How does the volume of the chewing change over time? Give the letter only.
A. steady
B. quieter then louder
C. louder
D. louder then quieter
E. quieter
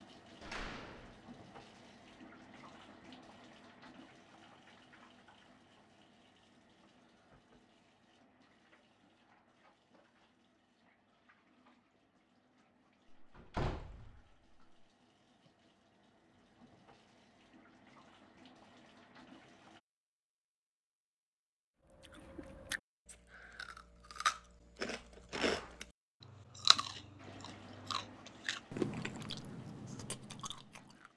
D.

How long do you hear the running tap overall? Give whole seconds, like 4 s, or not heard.
24 s.